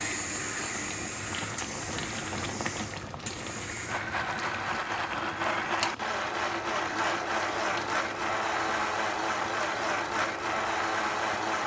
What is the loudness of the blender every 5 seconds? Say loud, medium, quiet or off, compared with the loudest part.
medium, loud, loud.